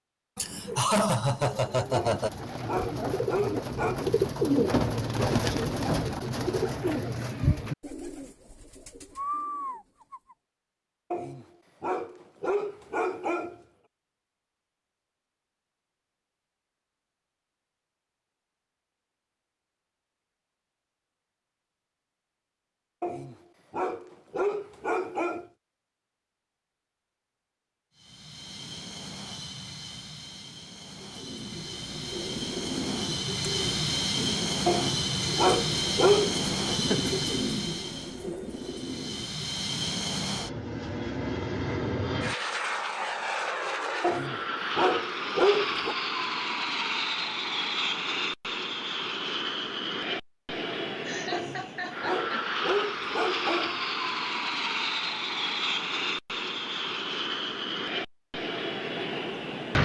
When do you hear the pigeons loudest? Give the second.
5 s.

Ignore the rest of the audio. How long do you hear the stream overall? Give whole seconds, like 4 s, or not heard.
not heard.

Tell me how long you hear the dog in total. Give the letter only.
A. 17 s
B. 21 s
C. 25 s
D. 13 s
D.